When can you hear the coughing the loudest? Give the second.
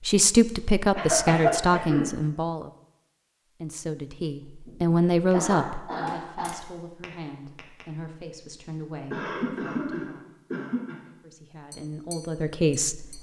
1 s.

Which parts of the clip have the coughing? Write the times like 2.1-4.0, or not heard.
0.9-2.0, 4.7-6.5, 9.1-11.0.